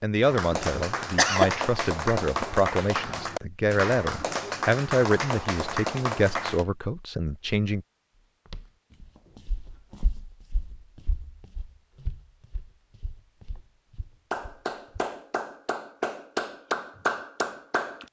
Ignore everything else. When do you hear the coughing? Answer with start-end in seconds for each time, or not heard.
0.7-1.5.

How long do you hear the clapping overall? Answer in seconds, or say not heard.
10 s.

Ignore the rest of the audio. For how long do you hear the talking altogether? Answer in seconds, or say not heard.
8 s.